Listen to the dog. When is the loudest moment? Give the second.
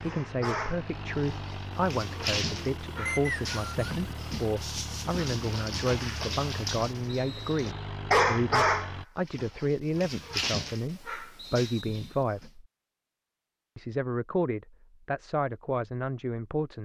8 s.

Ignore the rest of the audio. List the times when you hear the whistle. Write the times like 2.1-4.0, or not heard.
3.0-4.0, 7.0-7.7, 11.5-12.2.